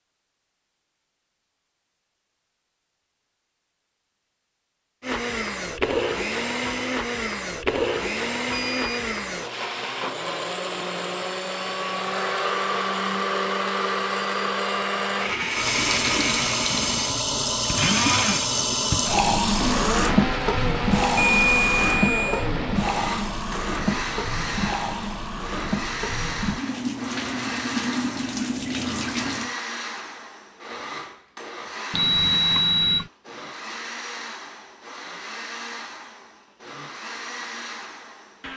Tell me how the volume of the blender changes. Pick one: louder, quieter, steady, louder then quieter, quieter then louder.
quieter.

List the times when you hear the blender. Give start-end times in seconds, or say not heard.
5.0-38.5.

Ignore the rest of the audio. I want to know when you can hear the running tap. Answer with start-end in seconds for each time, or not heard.
15.4-29.6.